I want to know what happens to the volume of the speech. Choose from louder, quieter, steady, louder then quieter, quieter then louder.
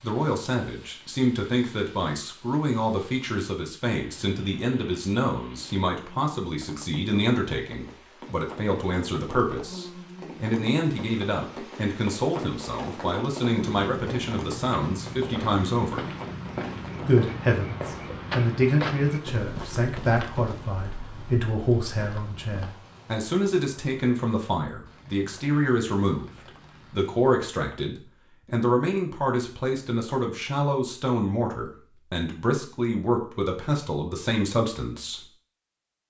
steady.